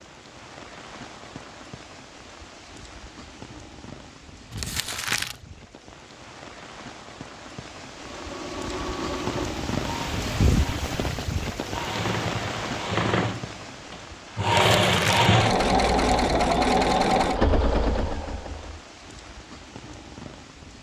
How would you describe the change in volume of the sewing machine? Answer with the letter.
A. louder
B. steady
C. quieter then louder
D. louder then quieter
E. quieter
A.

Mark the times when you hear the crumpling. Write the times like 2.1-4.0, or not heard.
4.5-5.4, 14.5-15.3.